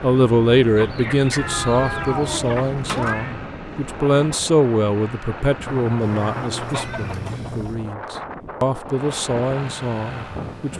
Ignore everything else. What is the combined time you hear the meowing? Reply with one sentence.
The meowing can be heard for 4 seconds in total.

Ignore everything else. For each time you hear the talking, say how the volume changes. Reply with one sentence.
The talking can be heard from 0.0 to 10.7 s, getting quieter then louder.